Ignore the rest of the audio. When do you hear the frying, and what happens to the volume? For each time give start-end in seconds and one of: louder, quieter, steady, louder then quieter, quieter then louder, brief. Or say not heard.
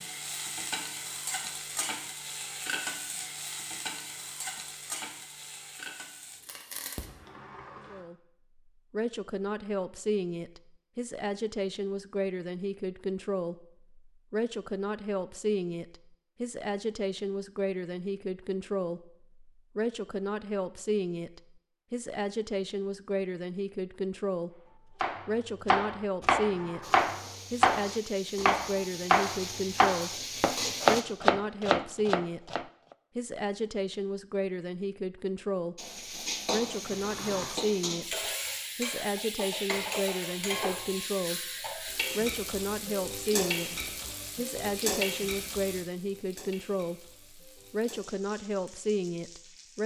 0.0-7.1 quieter
26.8-31.1 louder
35.8-49.8 quieter.